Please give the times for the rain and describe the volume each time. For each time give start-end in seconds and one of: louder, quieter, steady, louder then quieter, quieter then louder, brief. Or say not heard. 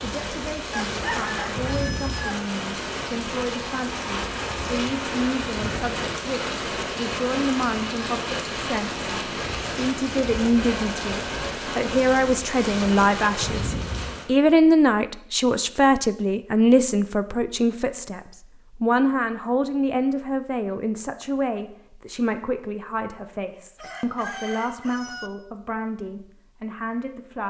0.0-14.3 steady.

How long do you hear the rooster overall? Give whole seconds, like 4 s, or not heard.
3 s.